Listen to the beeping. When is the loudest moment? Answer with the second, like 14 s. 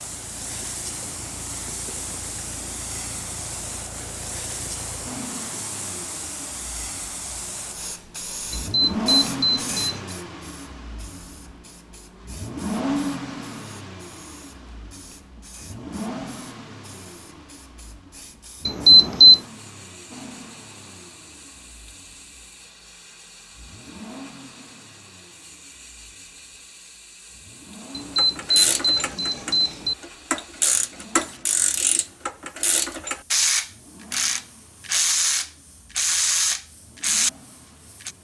19 s.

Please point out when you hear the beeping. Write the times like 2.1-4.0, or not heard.
8.5-10.1, 18.6-19.4, 27.9-29.9.